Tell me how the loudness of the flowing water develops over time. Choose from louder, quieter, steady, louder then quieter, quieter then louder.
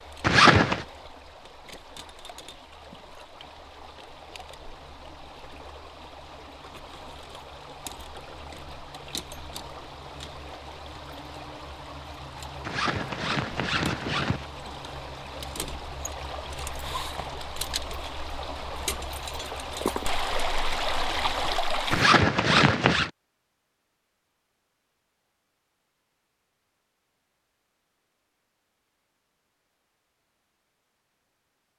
louder.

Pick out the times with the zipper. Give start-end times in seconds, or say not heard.
0.2-0.8, 12.7-14.4, 21.9-23.1.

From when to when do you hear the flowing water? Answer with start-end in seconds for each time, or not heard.
0.0-22.1.